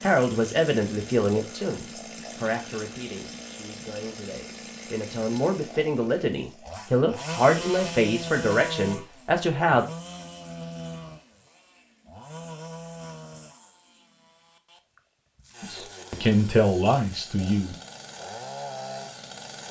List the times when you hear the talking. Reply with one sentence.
The talking can be heard from 0.0 to 9.8 s and from 15.6 to 17.8 s.